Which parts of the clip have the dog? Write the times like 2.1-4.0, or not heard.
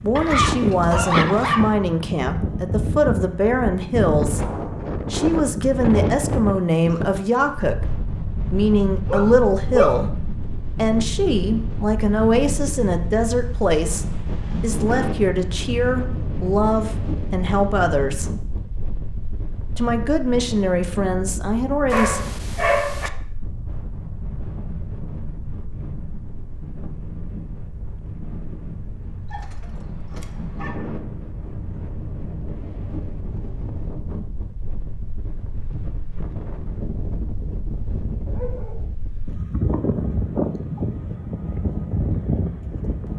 0.1-1.7, 9.1-10.0, 21.9-23.1, 29.3-30.8, 38.2-38.9.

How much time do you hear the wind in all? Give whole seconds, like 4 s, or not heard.
43 s.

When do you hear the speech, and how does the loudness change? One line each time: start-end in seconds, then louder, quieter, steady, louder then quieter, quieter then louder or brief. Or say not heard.
0.0-18.3 steady
19.8-22.2 brief.